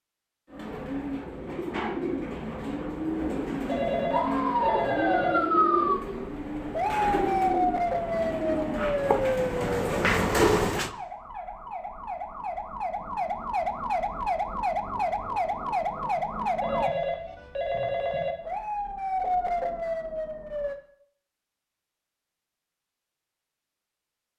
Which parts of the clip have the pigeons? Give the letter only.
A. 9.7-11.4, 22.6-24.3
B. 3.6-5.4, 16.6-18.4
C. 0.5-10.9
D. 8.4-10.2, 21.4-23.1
C.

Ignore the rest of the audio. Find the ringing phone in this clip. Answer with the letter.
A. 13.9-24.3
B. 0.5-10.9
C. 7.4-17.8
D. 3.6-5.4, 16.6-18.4
D.